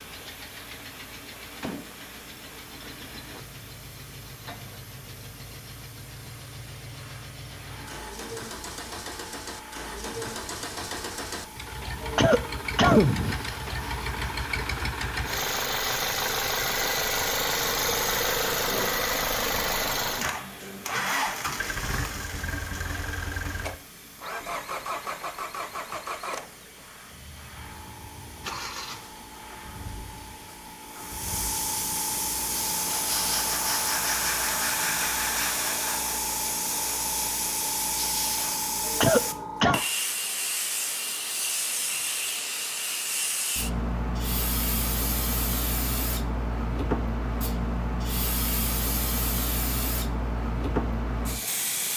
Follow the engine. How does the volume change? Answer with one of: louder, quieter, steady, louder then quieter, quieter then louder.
louder then quieter.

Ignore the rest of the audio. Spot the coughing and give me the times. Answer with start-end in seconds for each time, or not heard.
12.0-13.3, 38.9-39.8.